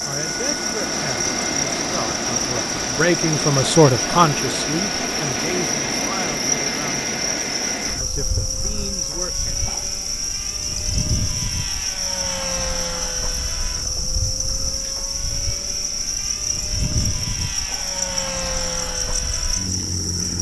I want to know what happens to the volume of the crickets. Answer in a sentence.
The loudness of the crickets stays about the same.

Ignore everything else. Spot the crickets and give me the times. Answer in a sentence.
The crickets can be heard from 0.0 to 20.3 s.